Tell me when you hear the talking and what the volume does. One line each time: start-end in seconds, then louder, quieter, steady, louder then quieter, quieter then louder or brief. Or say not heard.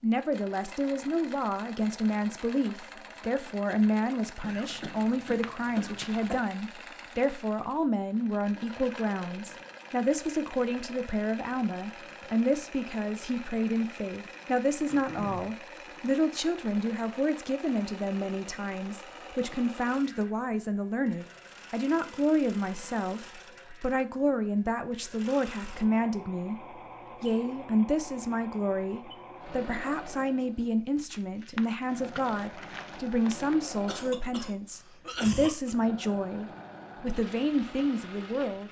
0.0-26.6 steady
27.2-38.6 steady.